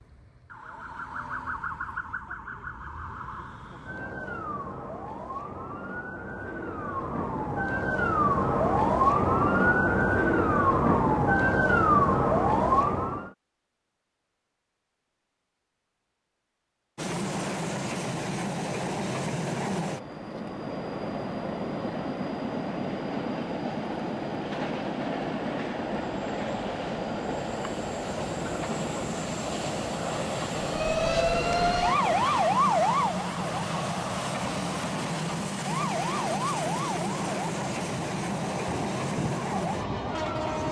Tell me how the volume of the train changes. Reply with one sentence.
The loudness of the train stays about the same.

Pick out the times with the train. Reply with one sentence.
The train can be heard from 16.9 to 40.6 s.